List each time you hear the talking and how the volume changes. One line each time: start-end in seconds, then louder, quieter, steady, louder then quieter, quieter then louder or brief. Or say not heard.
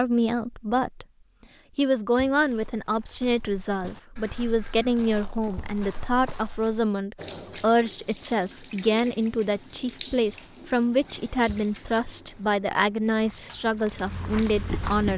0.0-1.1 brief
1.8-15.1 steady.